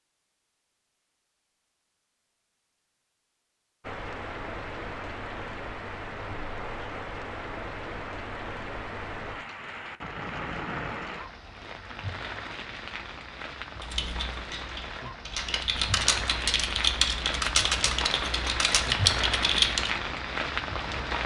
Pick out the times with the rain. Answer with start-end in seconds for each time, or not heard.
3.8-21.2.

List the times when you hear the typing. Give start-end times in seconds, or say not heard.
13.8-20.0.